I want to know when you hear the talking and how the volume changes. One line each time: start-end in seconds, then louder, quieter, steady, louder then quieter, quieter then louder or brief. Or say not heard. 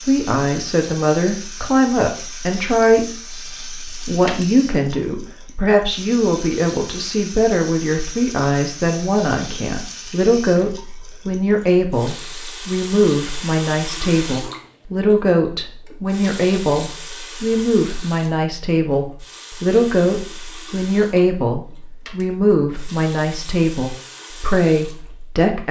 0.1-25.6 steady.